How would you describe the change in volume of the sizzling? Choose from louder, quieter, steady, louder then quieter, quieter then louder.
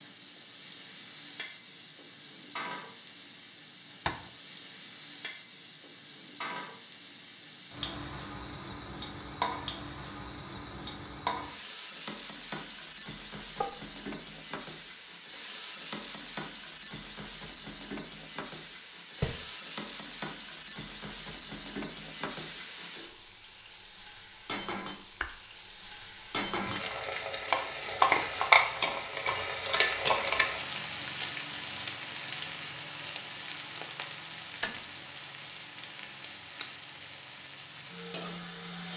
louder then quieter.